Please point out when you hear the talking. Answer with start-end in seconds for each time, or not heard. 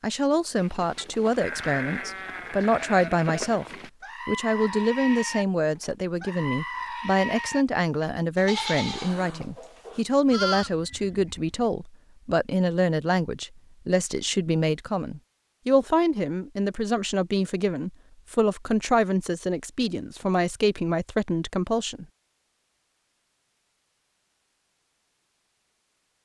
0.0-3.6, 4.2-22.1.